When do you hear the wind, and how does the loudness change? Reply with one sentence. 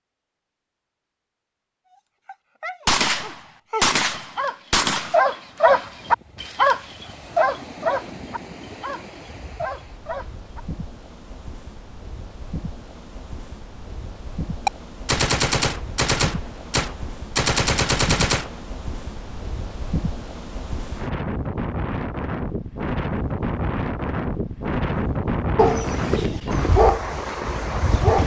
The wind can be heard from 5.7 to 28.2 s, getting louder.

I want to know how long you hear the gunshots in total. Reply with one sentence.
The gunshots can be heard for 7 seconds in total.